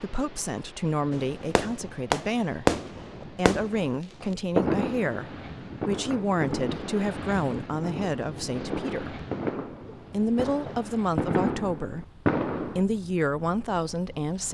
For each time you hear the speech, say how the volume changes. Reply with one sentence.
You can hear the speech from 0.0 to 9.2 s, at a steady volume; and from 10.1 to 14.4 s, getting quieter then louder.